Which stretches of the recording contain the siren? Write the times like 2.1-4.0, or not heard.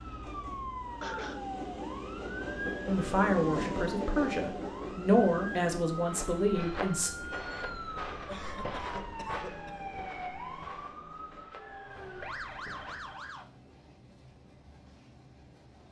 0.0-13.4.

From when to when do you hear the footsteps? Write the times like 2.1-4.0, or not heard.
6.0-13.2.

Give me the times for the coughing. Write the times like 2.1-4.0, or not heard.
1.0-1.4, 8.1-10.0.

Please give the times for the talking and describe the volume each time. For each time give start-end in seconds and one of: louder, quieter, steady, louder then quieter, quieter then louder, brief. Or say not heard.
2.9-7.1 louder then quieter.